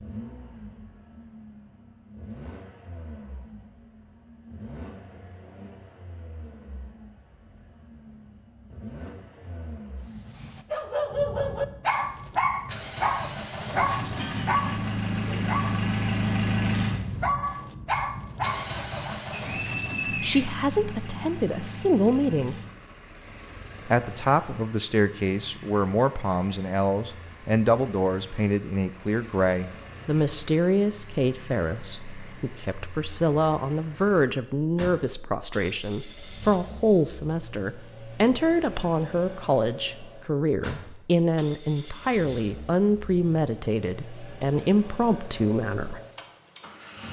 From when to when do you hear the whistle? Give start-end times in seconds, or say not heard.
19.4-20.4.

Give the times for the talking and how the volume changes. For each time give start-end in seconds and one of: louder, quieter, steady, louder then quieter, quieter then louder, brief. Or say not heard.
20.1-22.6 brief
23.9-46.0 steady.